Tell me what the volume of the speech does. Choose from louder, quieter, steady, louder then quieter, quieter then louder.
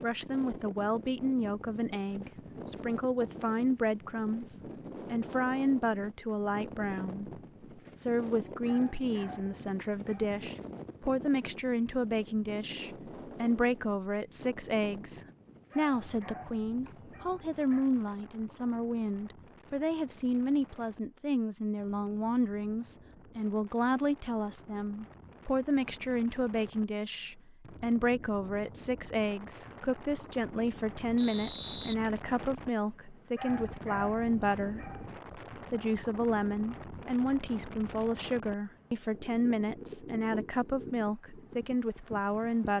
steady.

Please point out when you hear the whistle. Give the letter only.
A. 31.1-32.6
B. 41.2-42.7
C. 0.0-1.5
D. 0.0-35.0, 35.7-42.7
A.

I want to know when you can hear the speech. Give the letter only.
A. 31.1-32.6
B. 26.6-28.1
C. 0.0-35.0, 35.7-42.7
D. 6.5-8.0
C.